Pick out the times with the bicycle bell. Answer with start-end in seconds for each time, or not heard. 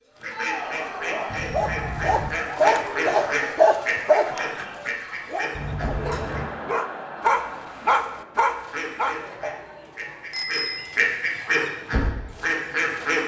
1.2-2.3, 5.5-6.5, 10.3-11.0.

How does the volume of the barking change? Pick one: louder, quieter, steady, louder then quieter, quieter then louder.
quieter then louder.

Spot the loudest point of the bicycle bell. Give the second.
11 s.